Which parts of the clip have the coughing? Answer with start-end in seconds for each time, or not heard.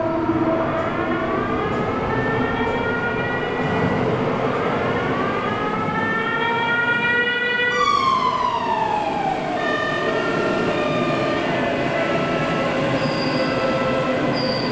not heard.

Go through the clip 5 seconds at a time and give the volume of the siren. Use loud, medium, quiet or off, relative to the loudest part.
medium, loud, medium.